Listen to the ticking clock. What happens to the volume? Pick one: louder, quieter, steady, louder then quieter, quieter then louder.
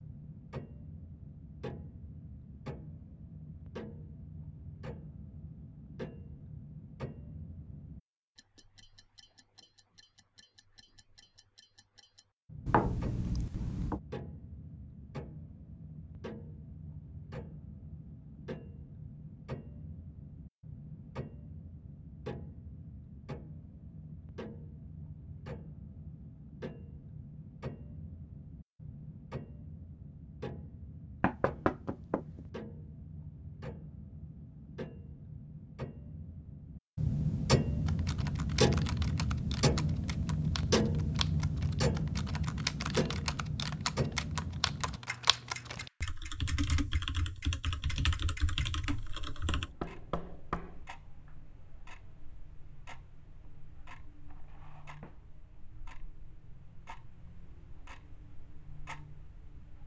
louder then quieter.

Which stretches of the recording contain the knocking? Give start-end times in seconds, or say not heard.
12.7-14.0, 31.2-32.4, 49.5-50.9.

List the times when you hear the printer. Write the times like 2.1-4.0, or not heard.
not heard.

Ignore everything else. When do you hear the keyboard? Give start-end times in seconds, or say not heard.
37.9-49.7.